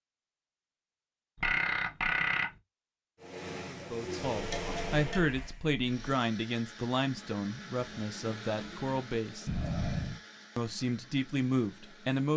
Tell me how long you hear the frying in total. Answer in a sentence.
You can hear the frying for 2 seconds altogether.